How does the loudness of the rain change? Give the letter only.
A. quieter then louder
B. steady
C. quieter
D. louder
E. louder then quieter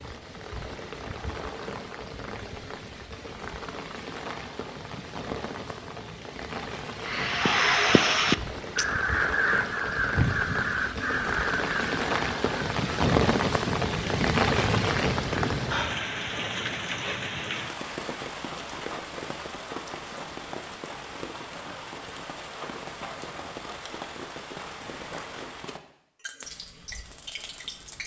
E.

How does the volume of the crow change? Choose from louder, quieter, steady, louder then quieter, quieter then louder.
quieter.